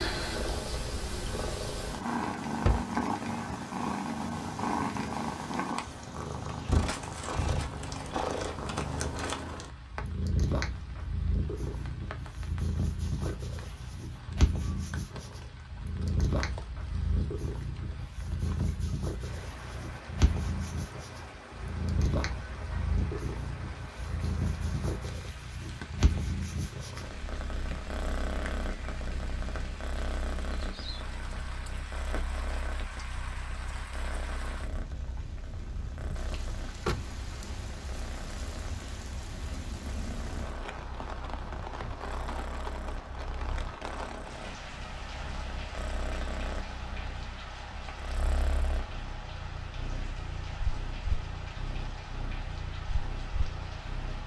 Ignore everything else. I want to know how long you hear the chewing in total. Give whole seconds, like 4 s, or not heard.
not heard.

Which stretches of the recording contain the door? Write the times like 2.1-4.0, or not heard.
2.1-3.4, 36.3-37.1.